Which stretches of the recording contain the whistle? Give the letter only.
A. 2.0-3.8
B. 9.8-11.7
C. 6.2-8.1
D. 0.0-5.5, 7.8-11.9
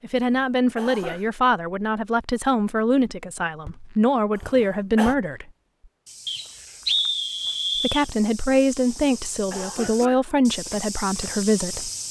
C.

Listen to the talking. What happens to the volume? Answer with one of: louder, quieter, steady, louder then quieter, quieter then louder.
steady.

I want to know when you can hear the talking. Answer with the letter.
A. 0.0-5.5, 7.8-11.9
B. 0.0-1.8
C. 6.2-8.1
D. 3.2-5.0
A.